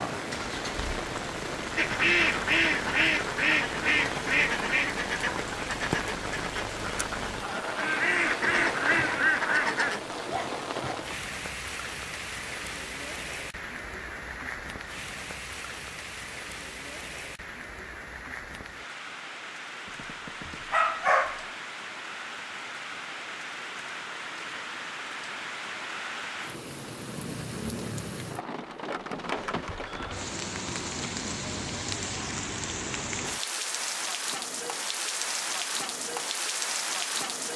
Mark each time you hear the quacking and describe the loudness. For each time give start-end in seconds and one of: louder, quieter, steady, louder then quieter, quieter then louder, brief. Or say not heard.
1.8-10.0 quieter then louder.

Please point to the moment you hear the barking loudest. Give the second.
21 s.